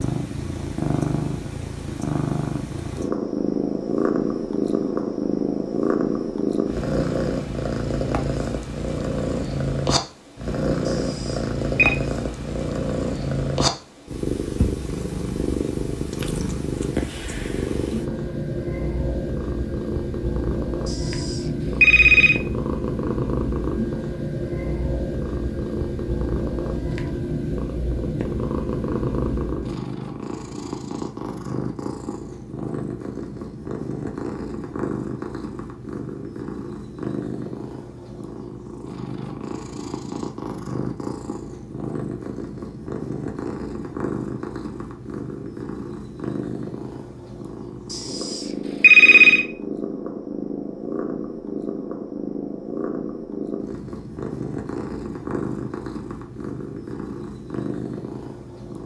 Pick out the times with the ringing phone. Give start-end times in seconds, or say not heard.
10.8-11.9, 20.9-22.4, 47.9-49.5.